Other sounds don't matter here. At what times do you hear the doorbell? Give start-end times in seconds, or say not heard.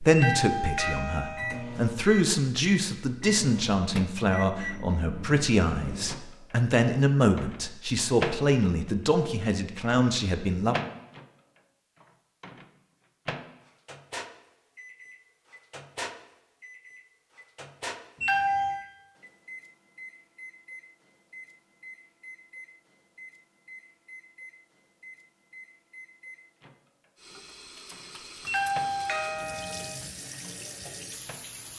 0.1-1.6, 18.2-18.8, 28.4-29.9.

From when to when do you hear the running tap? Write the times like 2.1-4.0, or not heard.
27.1-31.7.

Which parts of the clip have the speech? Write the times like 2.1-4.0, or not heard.
0.0-10.8.